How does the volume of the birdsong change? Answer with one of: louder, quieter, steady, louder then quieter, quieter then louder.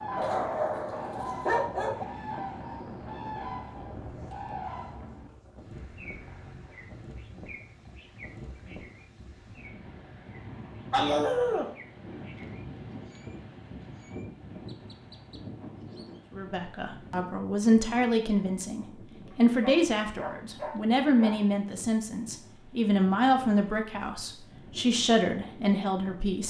quieter.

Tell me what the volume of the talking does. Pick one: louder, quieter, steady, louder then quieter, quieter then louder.
steady.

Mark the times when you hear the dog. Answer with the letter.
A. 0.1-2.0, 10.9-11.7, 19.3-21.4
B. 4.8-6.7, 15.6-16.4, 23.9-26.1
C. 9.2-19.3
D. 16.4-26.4
A.